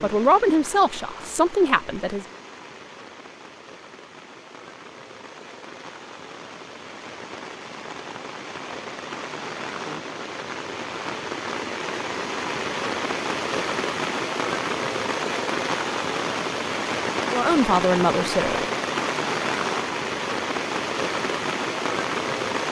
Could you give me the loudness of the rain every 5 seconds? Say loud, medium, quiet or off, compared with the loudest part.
quiet, medium, loud, loud, loud.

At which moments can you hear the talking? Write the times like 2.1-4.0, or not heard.
0.0-2.2, 17.3-18.6.